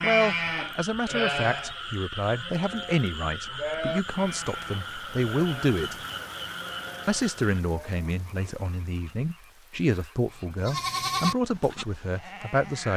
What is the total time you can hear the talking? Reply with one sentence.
You can hear the talking for 12 seconds altogether.